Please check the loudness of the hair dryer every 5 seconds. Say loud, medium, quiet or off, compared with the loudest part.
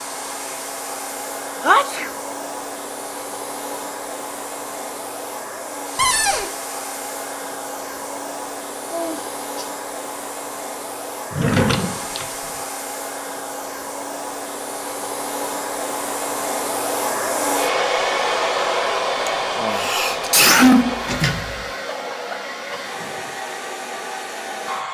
medium, medium, medium, loud, medium.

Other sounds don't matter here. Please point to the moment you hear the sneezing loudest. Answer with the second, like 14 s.
21 s.